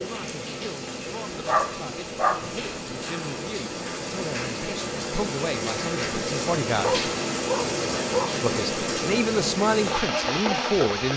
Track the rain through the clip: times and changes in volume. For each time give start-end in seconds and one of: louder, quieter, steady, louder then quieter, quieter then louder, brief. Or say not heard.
0.0-11.1 louder.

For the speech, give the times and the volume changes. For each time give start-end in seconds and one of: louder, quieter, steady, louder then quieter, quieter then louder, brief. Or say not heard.
0.0-7.0 louder
8.4-11.1 brief.